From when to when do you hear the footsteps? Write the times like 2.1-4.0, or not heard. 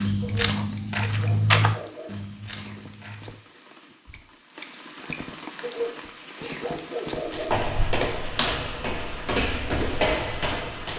0.0-3.4, 7.2-10.9.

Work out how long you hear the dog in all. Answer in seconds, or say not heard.
4 s.